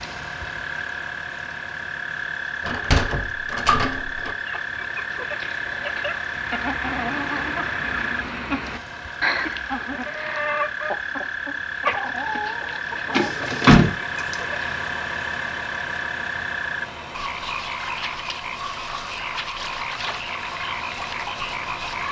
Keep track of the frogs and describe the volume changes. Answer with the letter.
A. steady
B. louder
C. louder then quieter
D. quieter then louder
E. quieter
A.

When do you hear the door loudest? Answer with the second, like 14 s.
14 s.